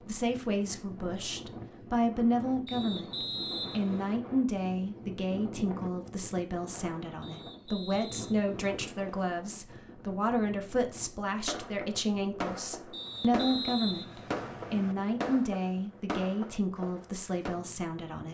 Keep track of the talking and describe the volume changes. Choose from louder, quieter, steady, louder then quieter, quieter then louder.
steady.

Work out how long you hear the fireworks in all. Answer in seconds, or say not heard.
6 s.